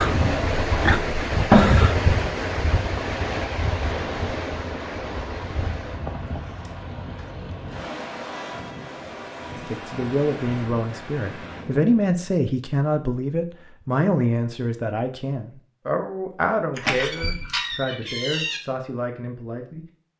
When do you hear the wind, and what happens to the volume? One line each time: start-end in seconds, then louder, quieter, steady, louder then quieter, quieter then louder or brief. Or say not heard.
0.0-11.9 quieter.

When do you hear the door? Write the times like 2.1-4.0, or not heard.
0.2-1.6, 16.8-18.6.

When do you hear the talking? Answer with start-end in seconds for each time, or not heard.
9.6-20.1.